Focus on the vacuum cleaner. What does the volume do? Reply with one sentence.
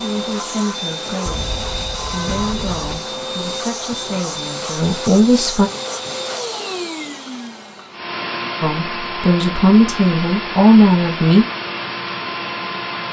The volume of the vacuum cleaner stays about the same.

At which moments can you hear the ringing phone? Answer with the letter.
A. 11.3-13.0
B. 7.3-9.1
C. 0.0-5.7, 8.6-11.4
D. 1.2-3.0
D.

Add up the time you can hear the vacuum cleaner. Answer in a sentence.
The vacuum cleaner can be heard for 13 seconds in total.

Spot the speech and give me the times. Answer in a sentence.
You can hear the speech from 0.0 to 5.7 s and from 8.6 to 11.4 s.